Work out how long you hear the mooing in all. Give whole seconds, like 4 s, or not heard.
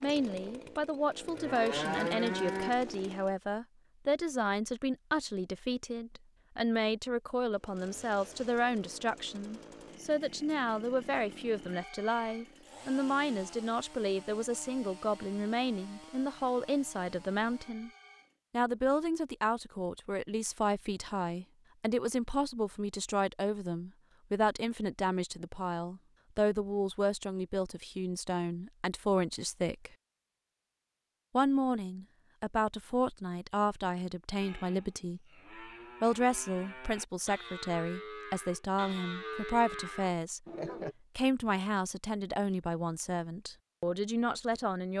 9 s.